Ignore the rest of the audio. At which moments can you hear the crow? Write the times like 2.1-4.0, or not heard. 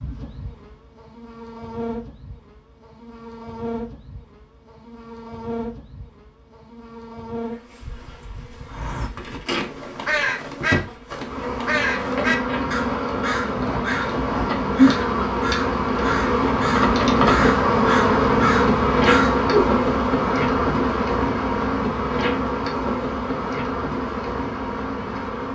8.7-19.5.